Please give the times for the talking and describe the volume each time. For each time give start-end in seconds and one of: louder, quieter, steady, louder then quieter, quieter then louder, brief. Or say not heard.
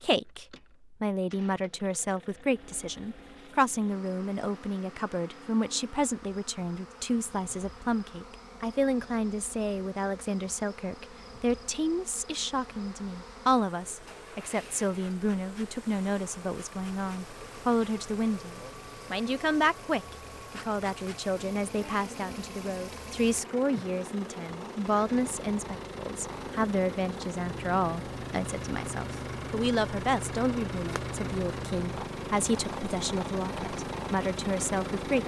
0.0-35.2 steady.